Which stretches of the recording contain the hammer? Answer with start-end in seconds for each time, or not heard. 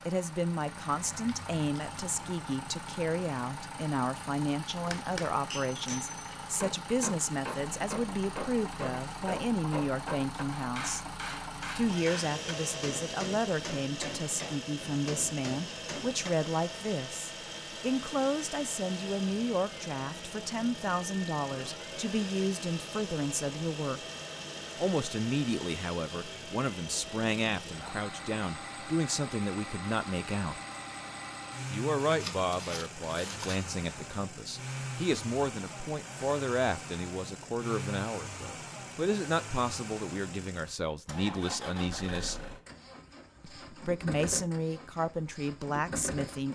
4.7-16.4.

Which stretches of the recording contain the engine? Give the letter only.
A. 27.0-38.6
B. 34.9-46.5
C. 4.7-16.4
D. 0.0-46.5
D.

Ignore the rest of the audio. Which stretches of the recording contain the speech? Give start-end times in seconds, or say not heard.
0.1-11.1, 11.8-24.0, 24.8-30.6, 31.7-42.4, 43.4-46.5.